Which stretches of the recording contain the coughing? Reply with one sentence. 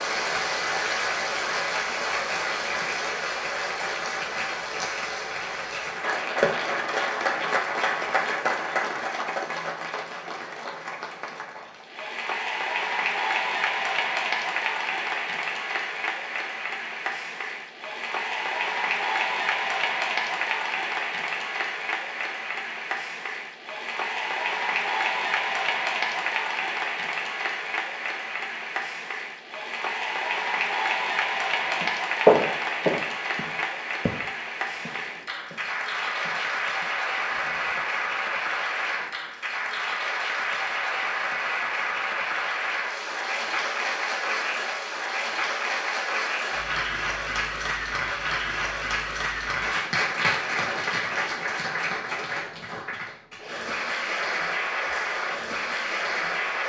You can't hear the coughing here.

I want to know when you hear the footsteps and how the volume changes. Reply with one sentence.
The footsteps can be heard from 31.6 to 37.9 s, getting quieter.